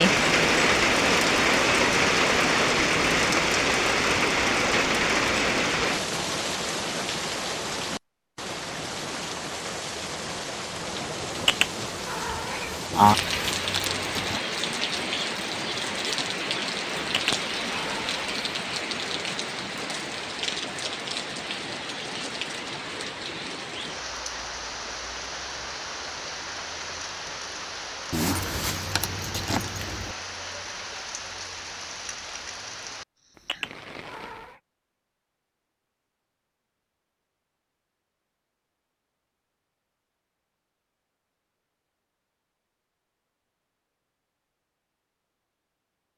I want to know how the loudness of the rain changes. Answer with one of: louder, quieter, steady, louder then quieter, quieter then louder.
quieter.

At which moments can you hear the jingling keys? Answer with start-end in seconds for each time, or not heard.
12.9-14.4, 28.1-30.1.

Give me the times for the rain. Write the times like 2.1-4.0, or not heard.
0.0-34.5.